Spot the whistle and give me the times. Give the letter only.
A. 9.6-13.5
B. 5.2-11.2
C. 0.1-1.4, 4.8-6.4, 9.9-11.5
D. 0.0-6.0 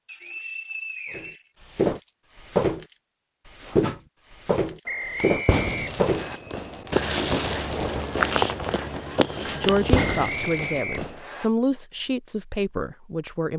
C.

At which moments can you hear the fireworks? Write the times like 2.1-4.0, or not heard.
5.2-11.2.